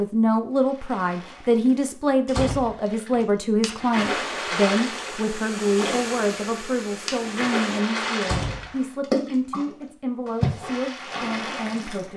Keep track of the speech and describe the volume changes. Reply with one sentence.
The volume of the speech goes down.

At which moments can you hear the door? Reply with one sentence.
The door can be heard from 2.2 to 3.2 s and from 8.2 to 8.7 s.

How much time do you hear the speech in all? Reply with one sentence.
The speech can be heard for 12 seconds in total.